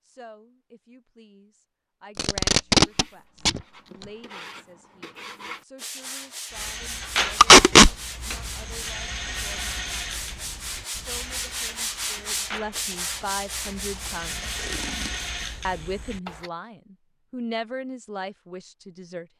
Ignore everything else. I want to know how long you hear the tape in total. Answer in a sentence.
You can hear the tape for 3 seconds altogether.